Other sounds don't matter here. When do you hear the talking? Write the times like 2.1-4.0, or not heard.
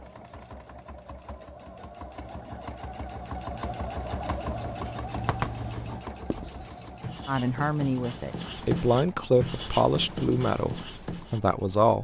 7.2-12.0.